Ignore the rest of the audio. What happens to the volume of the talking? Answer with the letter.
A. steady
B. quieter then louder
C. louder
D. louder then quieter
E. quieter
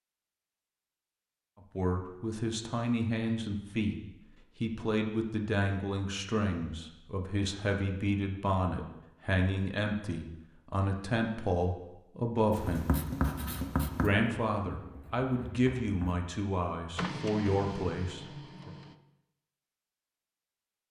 A.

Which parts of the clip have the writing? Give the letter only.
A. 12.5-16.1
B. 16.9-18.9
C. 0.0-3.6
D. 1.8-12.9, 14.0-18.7
A.